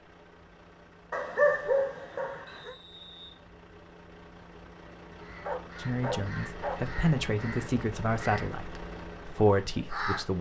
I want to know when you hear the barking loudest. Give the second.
2 s.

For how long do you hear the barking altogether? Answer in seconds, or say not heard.
3 s.